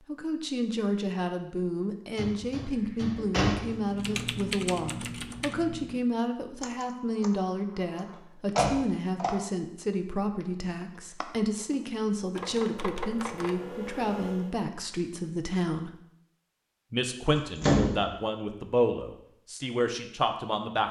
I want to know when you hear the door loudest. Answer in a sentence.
The volume of the door peaks at 18 seconds.